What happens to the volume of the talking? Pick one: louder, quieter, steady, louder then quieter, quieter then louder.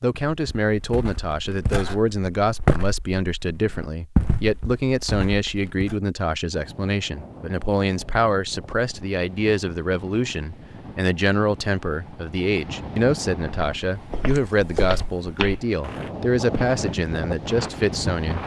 steady.